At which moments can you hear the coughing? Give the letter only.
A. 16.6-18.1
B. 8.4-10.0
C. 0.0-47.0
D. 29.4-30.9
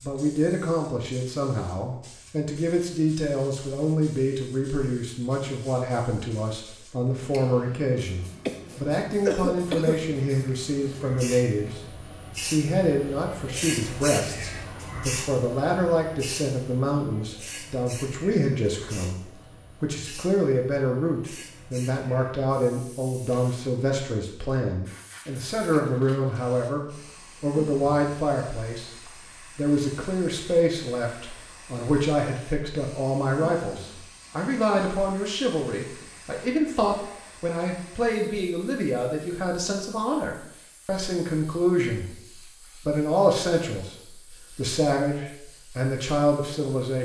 B.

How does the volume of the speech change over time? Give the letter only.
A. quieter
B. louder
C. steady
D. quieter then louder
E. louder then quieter
C.